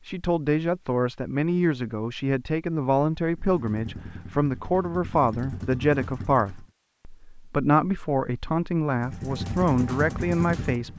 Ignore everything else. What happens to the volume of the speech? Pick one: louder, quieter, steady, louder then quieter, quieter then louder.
steady.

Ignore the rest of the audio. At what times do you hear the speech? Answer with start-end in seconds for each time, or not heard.
0.1-10.9.